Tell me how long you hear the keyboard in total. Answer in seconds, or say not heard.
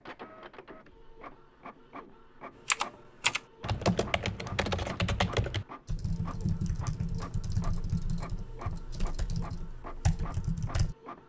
8 s.